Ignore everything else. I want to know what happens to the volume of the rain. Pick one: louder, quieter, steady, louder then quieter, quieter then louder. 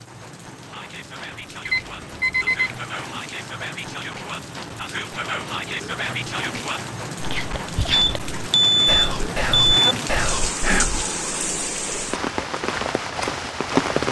louder.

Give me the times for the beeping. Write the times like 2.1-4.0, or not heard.
1.6-2.8, 7.9-9.9.